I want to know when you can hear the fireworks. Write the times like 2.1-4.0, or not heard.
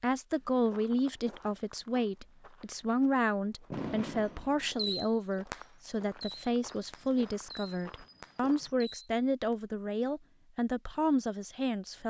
3.7-9.6.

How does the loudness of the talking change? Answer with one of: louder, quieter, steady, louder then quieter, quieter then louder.
steady.